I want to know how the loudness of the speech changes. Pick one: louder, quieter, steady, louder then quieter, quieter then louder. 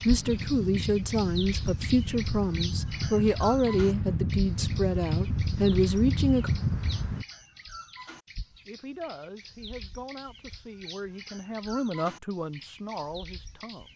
quieter then louder.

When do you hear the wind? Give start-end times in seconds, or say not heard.
0.0-7.2.